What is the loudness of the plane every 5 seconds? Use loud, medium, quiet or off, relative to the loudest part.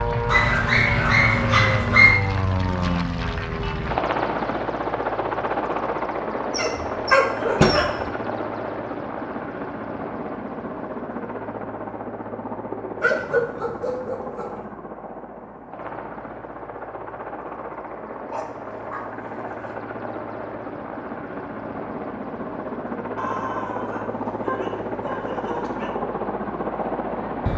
loud, loud, medium, medium, medium, loud.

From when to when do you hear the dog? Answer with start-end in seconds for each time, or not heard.
0.2-2.1, 6.5-8.1, 13.0-14.5, 18.3-19.8, 23.1-25.9.